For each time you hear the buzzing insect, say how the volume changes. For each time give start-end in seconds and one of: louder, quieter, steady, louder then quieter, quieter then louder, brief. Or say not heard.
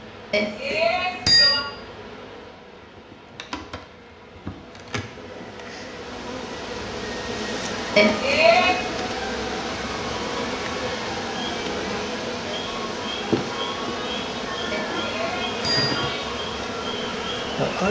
0.0-17.8 louder.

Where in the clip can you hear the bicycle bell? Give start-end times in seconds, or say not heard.
0.3-1.6, 8.0-8.8, 14.7-16.2.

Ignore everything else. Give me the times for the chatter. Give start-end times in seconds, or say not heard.
7.7-17.8.